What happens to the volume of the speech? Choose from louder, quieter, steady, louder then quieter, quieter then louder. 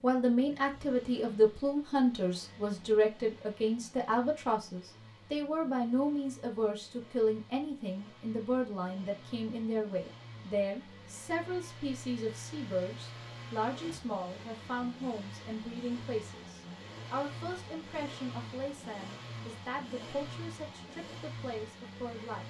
quieter.